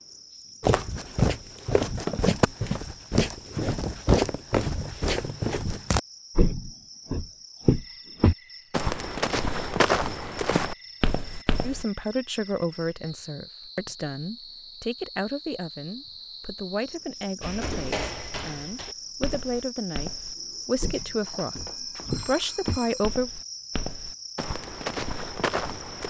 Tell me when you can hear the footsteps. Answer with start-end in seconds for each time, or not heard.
0.6-11.8, 17.4-26.0.